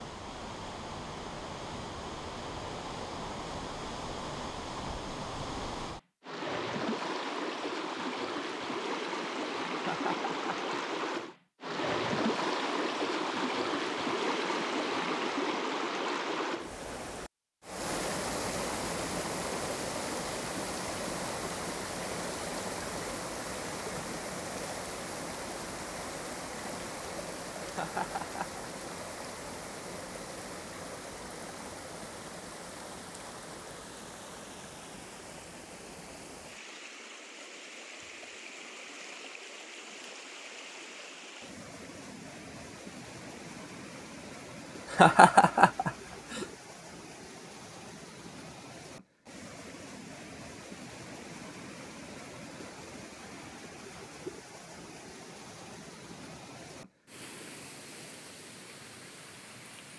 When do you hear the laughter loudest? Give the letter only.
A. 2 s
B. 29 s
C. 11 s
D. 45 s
D.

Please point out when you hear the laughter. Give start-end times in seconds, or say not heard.
9.8-10.8, 27.6-28.6, 44.9-46.5.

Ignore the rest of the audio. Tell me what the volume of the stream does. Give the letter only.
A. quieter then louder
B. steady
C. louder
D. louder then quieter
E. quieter
E.